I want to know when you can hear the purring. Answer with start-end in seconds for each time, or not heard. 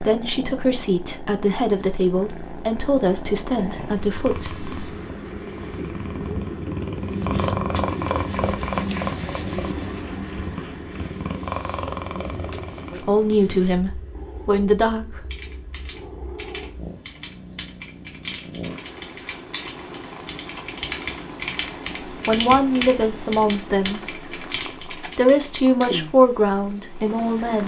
0.0-27.6.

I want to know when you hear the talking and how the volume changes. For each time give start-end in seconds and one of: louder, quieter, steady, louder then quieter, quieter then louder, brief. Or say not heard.
0.0-4.7 steady
12.9-15.2 brief
22.2-24.0 brief
25.1-27.6 brief.